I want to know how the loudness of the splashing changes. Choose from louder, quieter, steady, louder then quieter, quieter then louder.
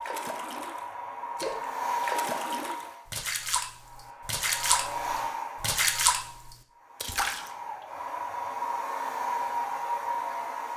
louder.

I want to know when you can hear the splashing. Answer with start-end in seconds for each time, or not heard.
0.0-7.5.